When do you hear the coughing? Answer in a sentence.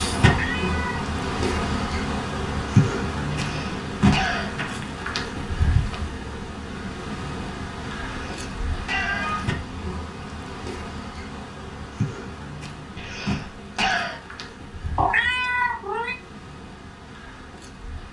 The coughing can be heard from 3.3 to 4.5 s, from 8.1 to 9.4 s and from 12.9 to 14.2 s.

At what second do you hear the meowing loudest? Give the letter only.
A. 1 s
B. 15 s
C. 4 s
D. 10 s
B.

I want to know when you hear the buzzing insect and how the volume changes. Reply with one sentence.
The buzzing insect can be heard from 0.0 to 18.0 s, getting quieter.